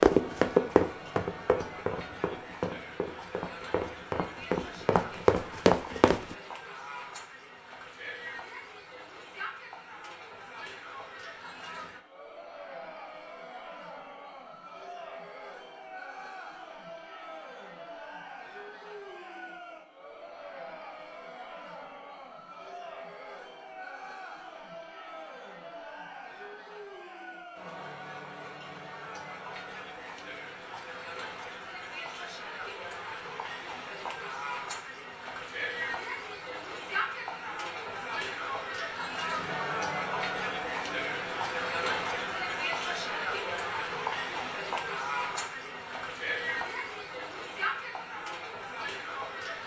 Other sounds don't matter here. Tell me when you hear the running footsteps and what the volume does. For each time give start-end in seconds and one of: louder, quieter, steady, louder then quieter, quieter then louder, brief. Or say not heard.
0.0-6.3 quieter then louder.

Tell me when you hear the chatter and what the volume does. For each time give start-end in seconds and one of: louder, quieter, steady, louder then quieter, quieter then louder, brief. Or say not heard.
0.0-49.6 louder.